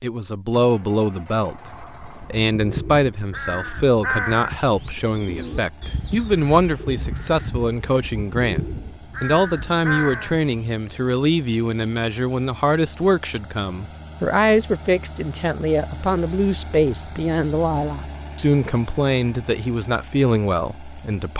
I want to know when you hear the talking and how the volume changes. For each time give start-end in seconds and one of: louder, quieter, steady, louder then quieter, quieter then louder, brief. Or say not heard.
0.0-21.3 steady.